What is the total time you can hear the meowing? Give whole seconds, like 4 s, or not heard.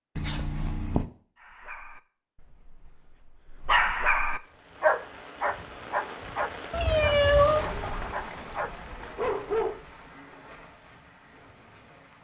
2 s.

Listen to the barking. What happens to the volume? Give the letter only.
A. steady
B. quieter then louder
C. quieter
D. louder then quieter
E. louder
D.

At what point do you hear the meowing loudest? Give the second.
7 s.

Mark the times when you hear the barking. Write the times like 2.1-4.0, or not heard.
1.4-9.8.